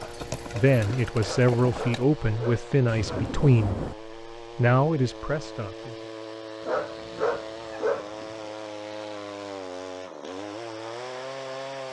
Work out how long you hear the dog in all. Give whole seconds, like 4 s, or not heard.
4 s.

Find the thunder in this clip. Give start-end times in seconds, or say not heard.
2.9-4.0.